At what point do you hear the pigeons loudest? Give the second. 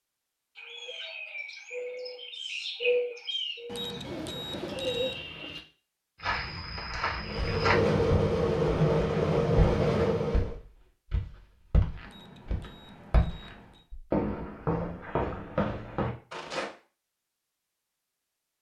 3 s.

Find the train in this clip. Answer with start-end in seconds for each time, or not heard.
7.2-10.6.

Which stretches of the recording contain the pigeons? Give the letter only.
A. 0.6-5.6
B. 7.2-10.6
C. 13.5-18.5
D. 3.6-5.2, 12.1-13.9
A.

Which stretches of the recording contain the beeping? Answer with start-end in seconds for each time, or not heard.
3.6-5.2, 12.1-13.9.